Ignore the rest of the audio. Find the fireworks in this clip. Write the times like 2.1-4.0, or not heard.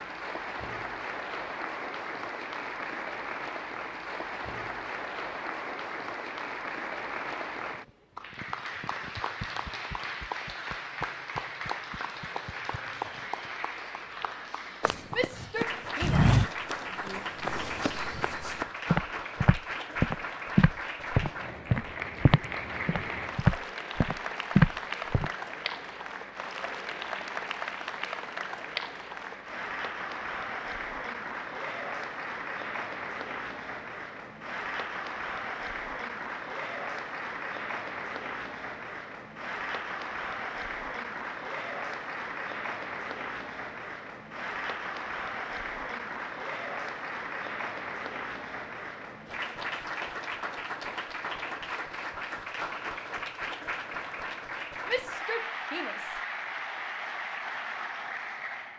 not heard.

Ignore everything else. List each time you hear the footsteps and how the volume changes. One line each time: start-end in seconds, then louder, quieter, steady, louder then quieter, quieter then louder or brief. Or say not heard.
14.8-25.3 quieter then louder.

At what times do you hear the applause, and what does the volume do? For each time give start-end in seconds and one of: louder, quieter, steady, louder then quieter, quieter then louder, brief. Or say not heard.
0.0-58.7 steady.